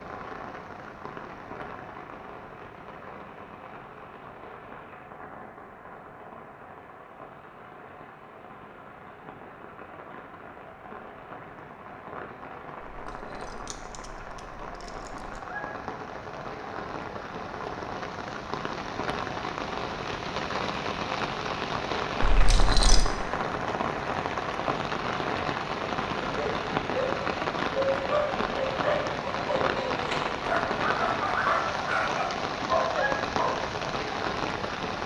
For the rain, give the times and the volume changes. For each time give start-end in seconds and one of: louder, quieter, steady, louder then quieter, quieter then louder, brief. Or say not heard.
0.0-35.0 louder.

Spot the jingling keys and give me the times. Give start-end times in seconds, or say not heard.
12.8-15.4, 22.2-23.1.